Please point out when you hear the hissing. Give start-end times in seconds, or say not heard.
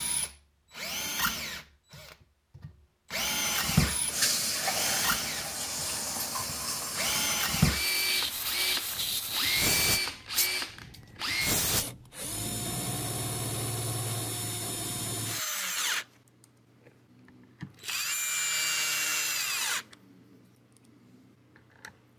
3.4-11.8.